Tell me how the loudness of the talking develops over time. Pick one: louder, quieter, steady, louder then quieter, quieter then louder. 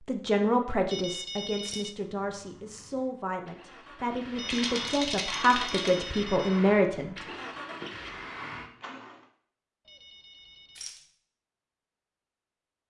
quieter then louder.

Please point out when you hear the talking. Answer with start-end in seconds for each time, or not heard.
0.1-7.2.